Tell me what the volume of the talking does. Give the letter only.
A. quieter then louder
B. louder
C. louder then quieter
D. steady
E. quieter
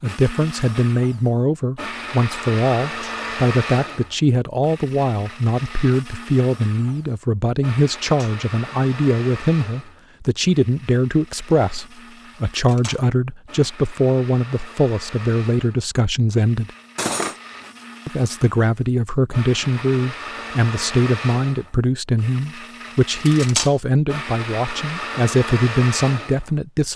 D.